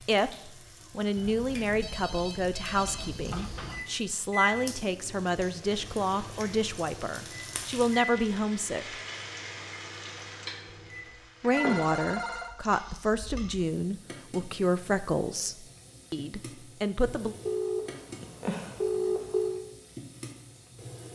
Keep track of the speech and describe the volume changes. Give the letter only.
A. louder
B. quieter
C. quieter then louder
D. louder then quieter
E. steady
E.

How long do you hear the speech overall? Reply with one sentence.
The speech can be heard for 15 seconds in total.